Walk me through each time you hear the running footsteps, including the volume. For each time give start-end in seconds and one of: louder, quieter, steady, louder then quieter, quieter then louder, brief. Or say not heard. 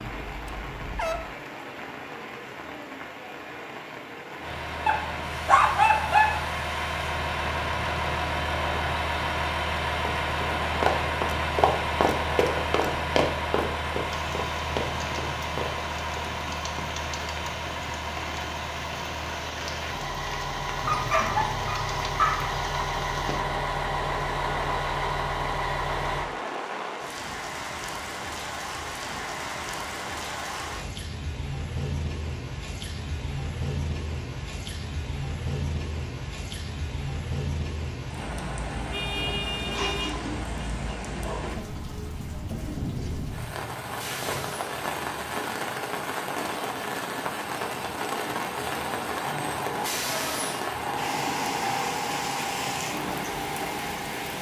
10.1-16.4 quieter.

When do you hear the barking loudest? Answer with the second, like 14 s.
6 s.